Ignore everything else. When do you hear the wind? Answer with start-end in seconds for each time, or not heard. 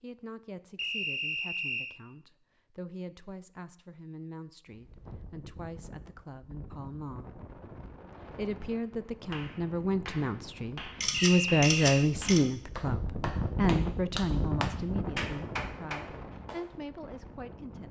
4.7-17.8.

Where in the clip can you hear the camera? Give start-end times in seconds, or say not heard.
11.0-12.4.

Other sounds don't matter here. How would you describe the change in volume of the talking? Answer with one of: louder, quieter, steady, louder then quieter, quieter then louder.
louder then quieter.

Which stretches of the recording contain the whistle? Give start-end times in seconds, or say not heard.
0.8-2.0, 11.1-12.1.